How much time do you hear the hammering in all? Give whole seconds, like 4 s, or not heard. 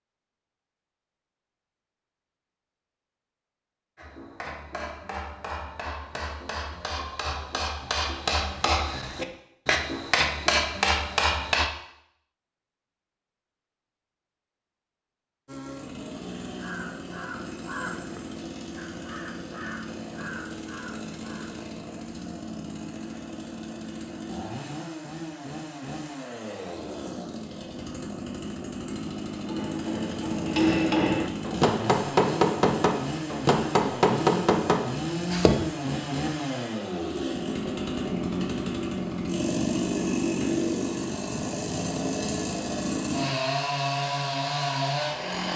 14 s.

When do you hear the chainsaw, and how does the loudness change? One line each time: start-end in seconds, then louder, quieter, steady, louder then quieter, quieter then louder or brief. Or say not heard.
15.4-45.5 louder.